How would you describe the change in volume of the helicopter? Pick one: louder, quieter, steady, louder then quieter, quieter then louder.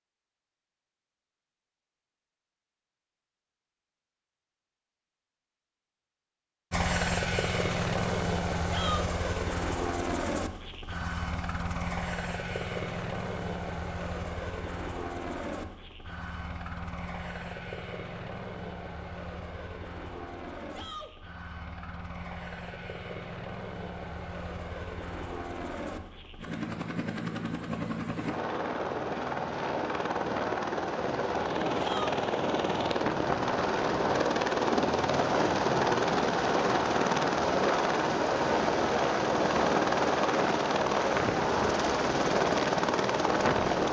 quieter then louder.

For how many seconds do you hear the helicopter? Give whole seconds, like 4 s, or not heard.
37 s.